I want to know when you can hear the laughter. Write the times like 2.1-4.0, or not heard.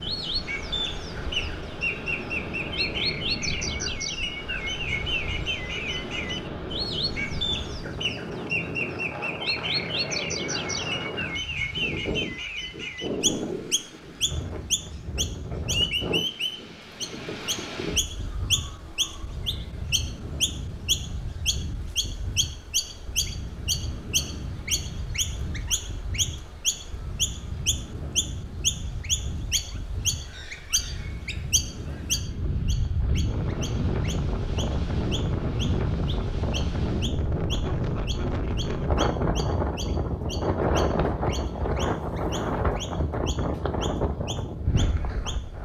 not heard.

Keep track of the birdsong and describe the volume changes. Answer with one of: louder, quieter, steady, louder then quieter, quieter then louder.
quieter.